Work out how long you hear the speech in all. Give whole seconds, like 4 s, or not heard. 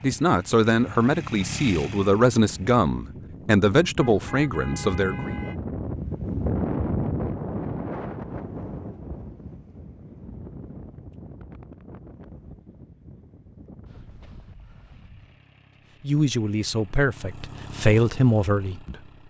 8 s.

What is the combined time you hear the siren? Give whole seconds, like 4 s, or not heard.
not heard.